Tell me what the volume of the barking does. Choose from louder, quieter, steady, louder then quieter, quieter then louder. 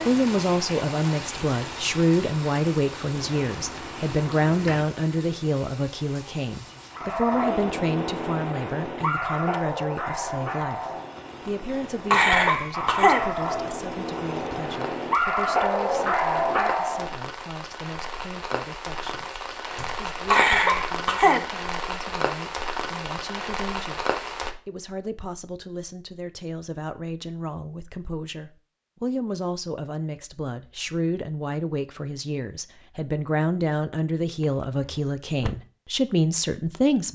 quieter then louder.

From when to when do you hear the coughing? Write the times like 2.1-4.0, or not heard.
12.1-13.2, 20.3-21.4.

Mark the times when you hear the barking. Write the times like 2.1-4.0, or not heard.
7.0-17.1.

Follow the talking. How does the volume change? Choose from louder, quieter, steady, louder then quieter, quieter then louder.
quieter then louder.